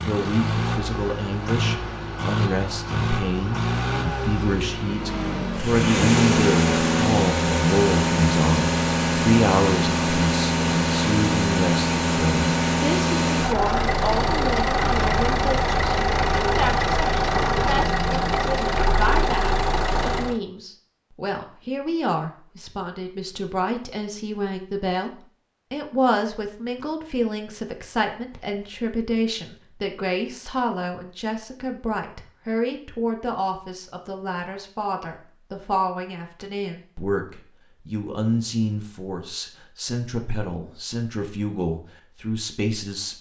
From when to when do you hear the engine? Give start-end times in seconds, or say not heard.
0.0-20.4.